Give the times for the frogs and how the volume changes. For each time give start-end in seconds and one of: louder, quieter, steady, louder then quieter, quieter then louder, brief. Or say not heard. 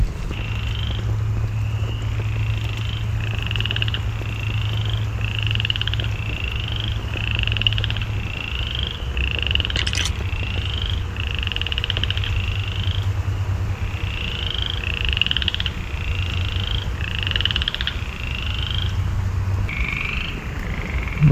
0.0-21.2 steady.